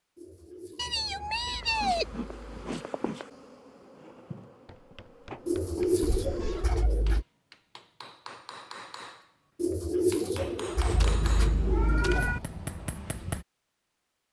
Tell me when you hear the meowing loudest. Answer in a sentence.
The loudest moment of the meowing is at 2 seconds.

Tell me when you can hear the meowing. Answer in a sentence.
The meowing can be heard from 0.8 to 2.1 s, from 6.0 to 6.7 s and from 10.8 to 12.4 s.